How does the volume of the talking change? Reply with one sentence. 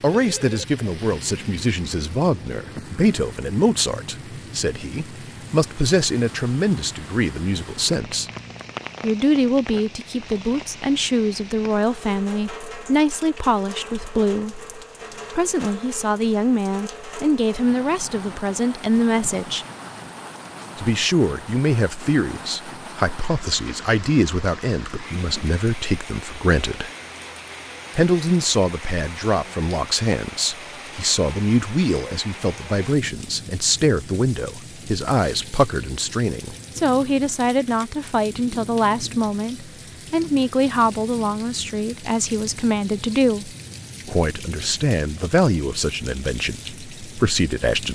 The volume of the talking stays about the same.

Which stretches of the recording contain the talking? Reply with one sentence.
You can hear the talking from 0.0 to 8.3 s, from 9.0 to 14.6 s, from 15.3 to 19.6 s, from 20.8 to 26.9 s and from 27.9 to 47.8 s.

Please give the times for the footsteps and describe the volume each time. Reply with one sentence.
You can't hear the footsteps here.